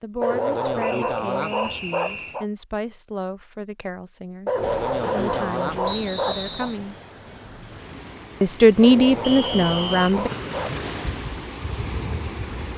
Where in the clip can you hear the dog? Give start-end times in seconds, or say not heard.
0.2-2.5, 4.5-6.7, 8.8-10.8.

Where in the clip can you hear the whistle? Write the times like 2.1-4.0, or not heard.
0.8-2.5, 5.8-6.8, 9.2-10.2.